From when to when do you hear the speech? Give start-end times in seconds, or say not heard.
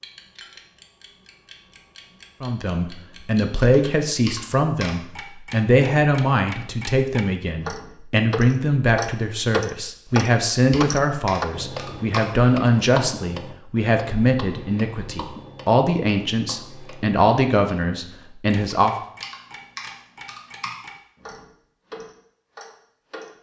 2.4-18.9.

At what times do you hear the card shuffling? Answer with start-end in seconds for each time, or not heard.
not heard.